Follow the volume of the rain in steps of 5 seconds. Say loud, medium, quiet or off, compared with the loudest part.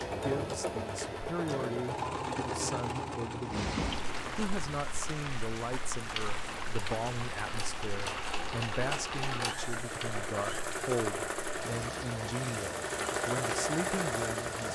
loud, loud, medium.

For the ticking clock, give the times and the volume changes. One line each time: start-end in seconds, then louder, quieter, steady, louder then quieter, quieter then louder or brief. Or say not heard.
not heard.